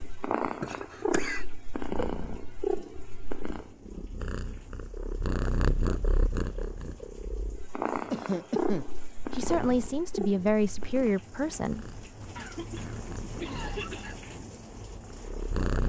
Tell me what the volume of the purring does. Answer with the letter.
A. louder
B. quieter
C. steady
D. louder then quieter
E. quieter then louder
B.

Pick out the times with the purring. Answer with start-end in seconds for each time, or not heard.
0.0-15.8.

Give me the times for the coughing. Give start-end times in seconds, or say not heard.
0.6-1.4, 8.1-8.8, 12.3-14.2.